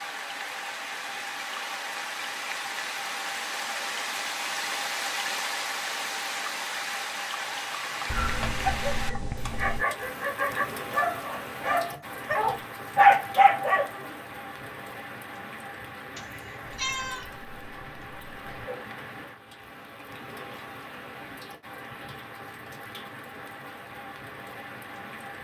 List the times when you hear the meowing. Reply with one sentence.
The meowing can be heard from 16.1 to 17.3 s.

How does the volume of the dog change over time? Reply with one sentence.
The volume of the dog goes up.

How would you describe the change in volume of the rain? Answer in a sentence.
The loudness of the rain goes down.